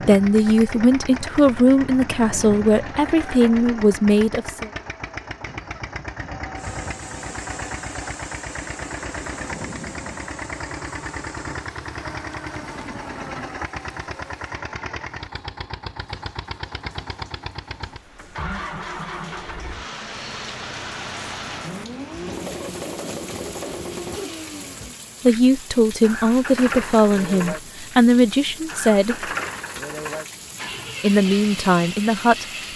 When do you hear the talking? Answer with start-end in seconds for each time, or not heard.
0.1-4.7, 25.2-29.3, 31.0-32.7.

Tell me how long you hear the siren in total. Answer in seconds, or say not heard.
not heard.